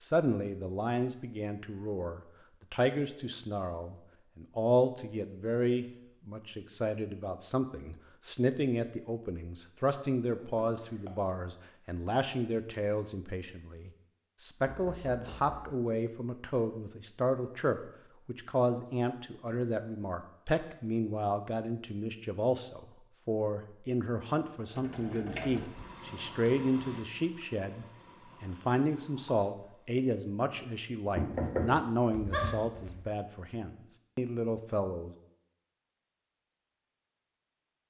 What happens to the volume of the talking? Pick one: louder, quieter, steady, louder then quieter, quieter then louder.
steady.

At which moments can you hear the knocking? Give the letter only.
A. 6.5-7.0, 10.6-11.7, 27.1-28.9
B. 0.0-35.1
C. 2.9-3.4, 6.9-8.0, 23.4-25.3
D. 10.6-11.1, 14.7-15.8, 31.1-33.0
D.